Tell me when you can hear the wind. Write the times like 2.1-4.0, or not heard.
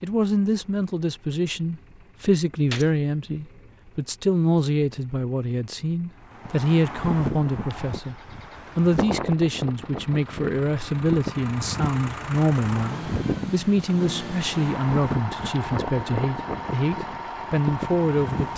6.2-18.5.